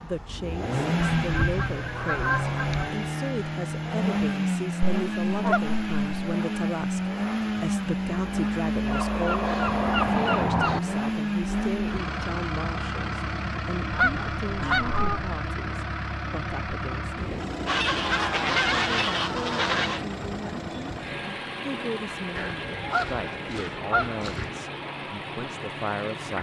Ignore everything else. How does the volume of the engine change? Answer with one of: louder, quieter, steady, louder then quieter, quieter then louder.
quieter.